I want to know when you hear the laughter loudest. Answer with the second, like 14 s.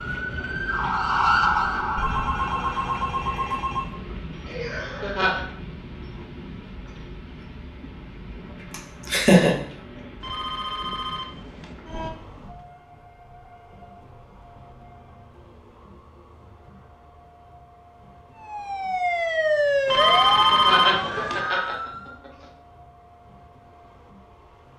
9 s.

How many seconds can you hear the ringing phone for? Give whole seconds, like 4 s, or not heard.
5 s.